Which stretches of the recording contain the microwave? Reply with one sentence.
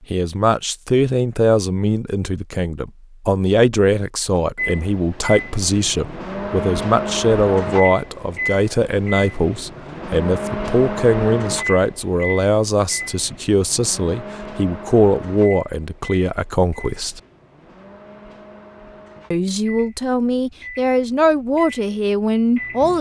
You can hear the microwave from 4.5 to 22.9 s.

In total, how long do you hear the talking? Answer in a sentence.
You can hear the talking for 21 seconds altogether.